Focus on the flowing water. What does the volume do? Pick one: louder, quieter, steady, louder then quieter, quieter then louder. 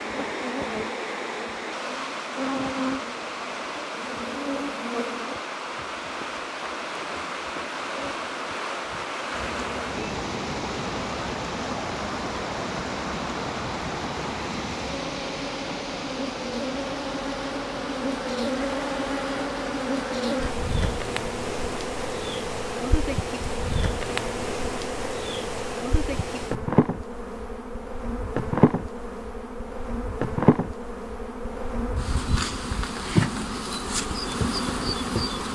quieter.